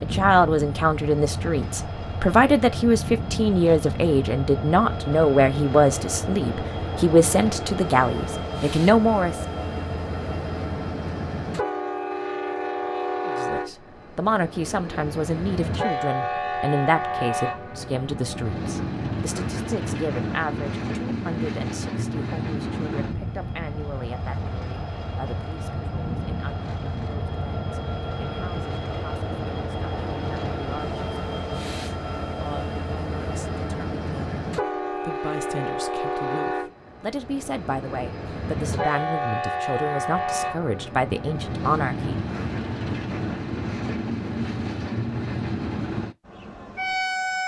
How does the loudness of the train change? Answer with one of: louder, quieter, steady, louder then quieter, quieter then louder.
steady.